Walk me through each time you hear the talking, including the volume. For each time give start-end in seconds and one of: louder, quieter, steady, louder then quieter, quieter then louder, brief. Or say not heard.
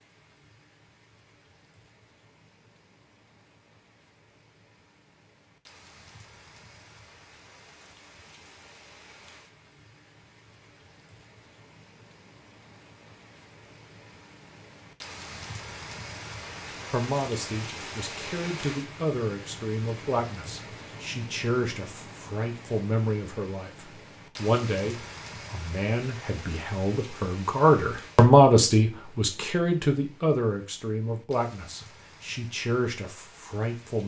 16.6-34.0 louder then quieter.